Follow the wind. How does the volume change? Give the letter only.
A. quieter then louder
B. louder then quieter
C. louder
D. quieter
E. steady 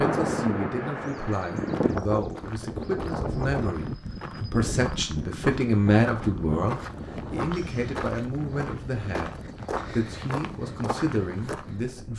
D.